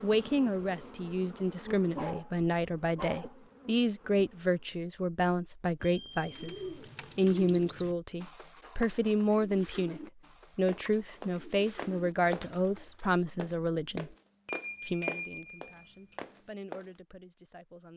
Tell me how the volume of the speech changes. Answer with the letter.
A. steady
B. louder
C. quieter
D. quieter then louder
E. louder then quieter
C.